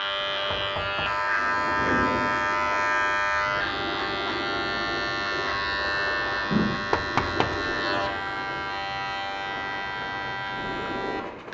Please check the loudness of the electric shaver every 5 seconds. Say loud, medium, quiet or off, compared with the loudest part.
loud, loud, medium.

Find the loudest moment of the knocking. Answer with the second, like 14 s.
7 s.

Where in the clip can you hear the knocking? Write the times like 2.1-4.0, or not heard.
0.5-1.1, 6.9-7.8.